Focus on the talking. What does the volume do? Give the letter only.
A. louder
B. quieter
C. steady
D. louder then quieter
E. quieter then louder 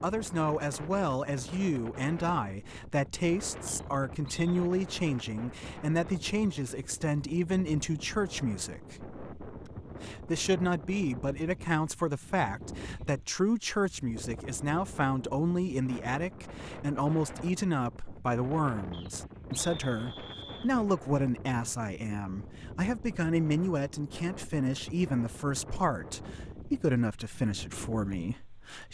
C.